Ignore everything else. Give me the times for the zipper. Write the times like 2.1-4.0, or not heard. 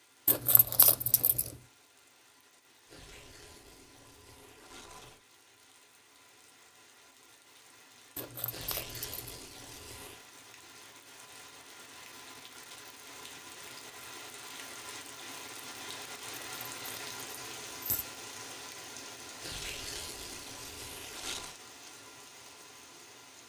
not heard.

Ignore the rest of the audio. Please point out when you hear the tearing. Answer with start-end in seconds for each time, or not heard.
2.9-5.2, 8.4-10.2, 19.4-21.6.